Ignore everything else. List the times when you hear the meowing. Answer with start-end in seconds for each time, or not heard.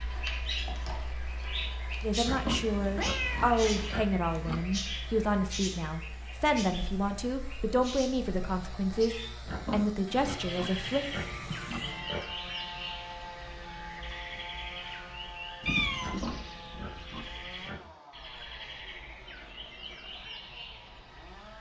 2.5-4.0, 10.8-12.2, 15.6-16.2.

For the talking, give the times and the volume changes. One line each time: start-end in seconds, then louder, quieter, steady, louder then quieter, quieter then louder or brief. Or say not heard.
2.0-11.1 steady.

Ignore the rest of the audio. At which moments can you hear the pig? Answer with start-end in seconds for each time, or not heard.
2.2-4.7, 9.4-12.2, 15.9-17.9.